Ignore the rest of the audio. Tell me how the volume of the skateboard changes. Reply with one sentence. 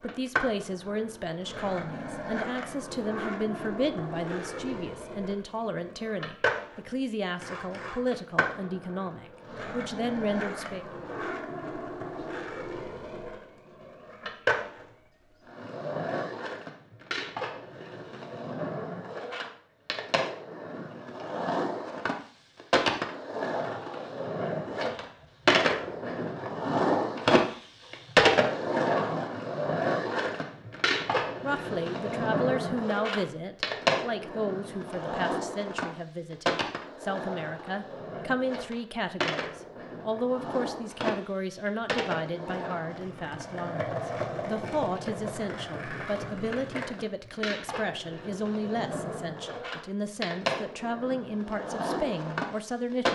The loudness of the skateboard goes up, then down.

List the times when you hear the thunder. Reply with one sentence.
You can't hear the thunder here.